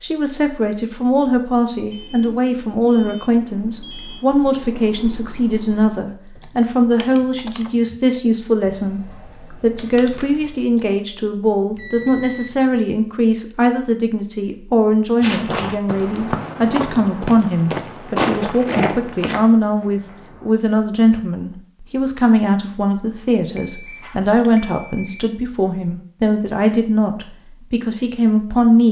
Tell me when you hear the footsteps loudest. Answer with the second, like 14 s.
18 s.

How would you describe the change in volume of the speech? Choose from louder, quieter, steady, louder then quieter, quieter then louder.
steady.